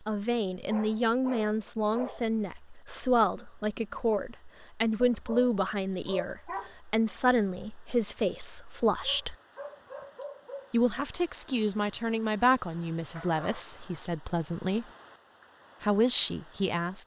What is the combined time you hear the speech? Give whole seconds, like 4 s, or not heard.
15 s.